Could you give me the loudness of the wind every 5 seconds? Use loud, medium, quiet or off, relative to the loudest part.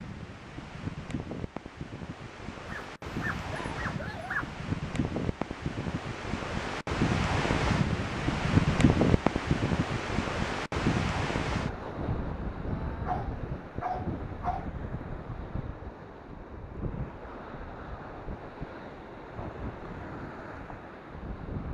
medium, loud, medium, quiet, quiet.